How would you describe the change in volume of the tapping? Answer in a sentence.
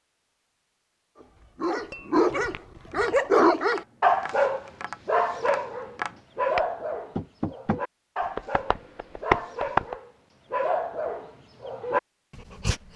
The loudness of the tapping goes up.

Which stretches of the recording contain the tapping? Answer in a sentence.
The tapping can be heard from 1.2 to 9.9 s.